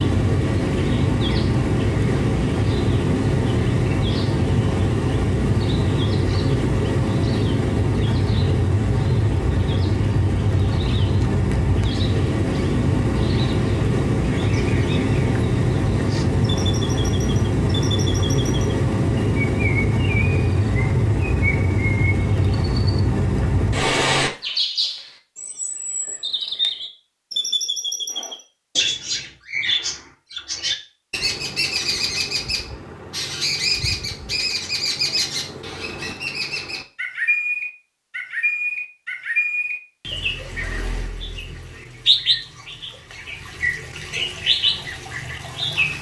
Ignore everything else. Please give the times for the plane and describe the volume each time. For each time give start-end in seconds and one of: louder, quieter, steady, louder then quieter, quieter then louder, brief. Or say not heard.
0.0-24.3 steady.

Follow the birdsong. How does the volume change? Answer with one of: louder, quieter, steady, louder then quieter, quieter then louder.
louder.